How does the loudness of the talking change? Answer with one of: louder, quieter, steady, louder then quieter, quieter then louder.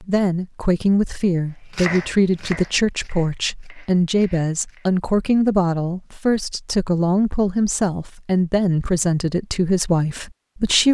steady.